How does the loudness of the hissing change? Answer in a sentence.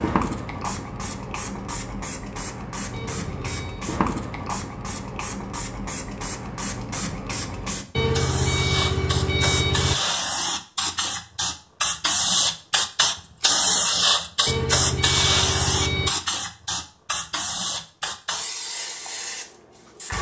The loudness of the hissing goes up, then down.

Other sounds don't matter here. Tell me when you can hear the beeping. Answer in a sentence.
You can hear the beeping from 2.9 to 3.9 s, from 8.0 to 9.9 s and from 14.4 to 16.1 s.